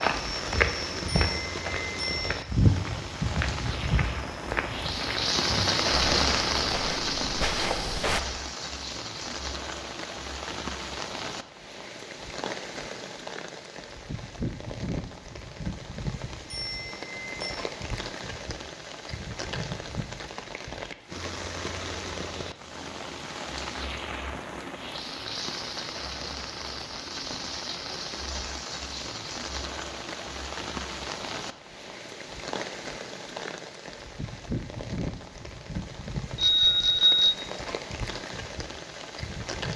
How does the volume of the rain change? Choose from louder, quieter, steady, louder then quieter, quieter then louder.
quieter.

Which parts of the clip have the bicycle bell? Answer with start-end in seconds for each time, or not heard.
1.1-2.4, 16.5-17.6, 36.4-37.4.